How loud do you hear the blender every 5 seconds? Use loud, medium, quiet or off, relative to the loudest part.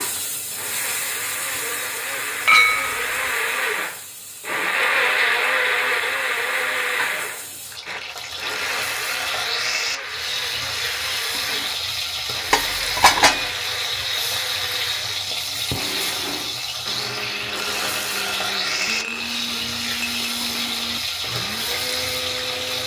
loud, loud, medium, medium, medium.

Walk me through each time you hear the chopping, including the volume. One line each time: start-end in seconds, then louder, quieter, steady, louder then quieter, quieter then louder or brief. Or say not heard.
not heard.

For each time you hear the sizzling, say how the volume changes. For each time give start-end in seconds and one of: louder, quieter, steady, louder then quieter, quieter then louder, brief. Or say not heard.
0.0-22.8 louder.